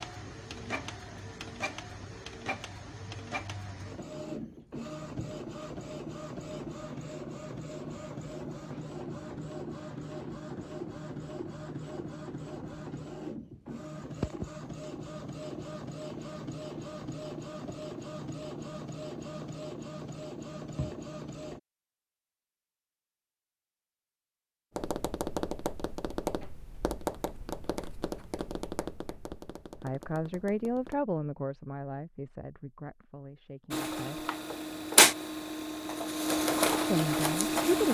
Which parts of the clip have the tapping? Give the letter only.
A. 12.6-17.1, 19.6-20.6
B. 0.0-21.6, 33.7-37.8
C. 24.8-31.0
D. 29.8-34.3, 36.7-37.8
C.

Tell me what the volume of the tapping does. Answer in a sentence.
The volume of the tapping goes down.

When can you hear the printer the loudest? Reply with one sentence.
The volume of the printer peaks at 35 seconds.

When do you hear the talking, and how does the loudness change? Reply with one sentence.
You can hear the talking from 29.8 to 34.3 s, getting quieter; and briefly from 36.7 to 37.8 s.